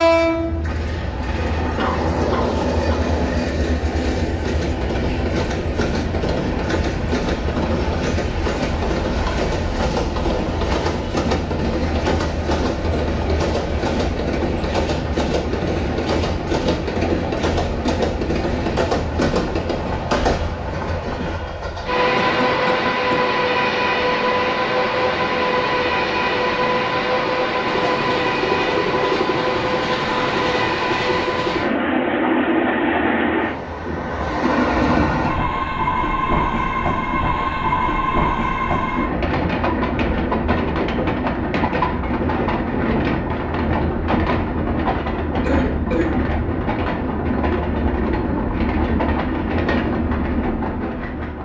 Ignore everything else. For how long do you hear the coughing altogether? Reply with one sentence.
The coughing can be heard for 3 seconds in total.